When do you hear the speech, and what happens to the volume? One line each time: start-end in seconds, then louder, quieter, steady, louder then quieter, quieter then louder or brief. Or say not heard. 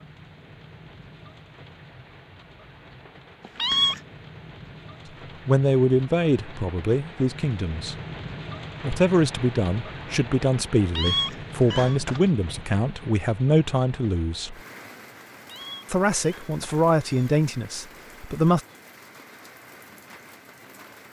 5.5-8.0 brief
8.8-14.6 steady
15.9-18.6 brief.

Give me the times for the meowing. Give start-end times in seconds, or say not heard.
3.4-4.0, 10.8-12.2, 15.3-17.4.